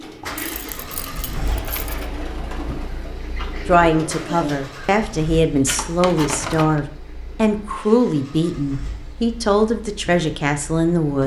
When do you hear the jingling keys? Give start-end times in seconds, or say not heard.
0.3-2.0, 5.7-6.8.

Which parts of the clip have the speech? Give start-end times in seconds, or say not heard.
3.6-11.2.